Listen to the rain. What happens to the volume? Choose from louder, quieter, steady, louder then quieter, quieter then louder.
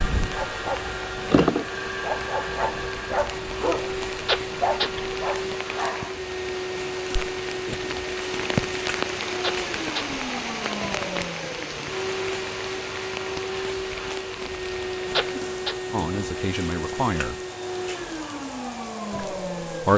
louder then quieter.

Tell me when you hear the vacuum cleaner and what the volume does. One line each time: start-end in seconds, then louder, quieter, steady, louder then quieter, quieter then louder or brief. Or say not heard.
0.0-19.9 steady.